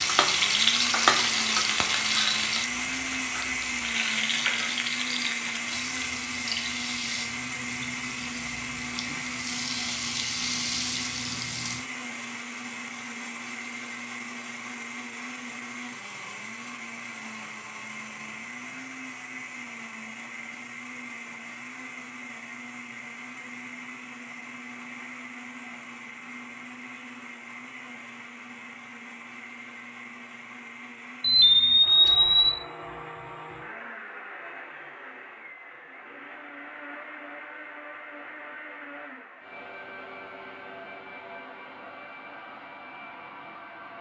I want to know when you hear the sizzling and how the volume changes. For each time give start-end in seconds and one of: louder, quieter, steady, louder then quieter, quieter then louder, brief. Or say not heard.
0.0-11.8 quieter then louder.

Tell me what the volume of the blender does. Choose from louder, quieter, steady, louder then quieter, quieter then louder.
quieter.